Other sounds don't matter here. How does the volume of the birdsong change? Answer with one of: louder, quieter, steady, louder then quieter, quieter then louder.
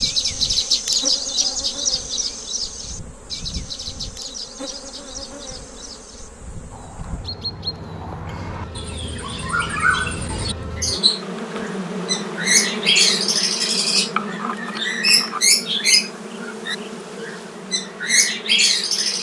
quieter then louder.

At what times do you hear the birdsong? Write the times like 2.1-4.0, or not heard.
0.0-19.1.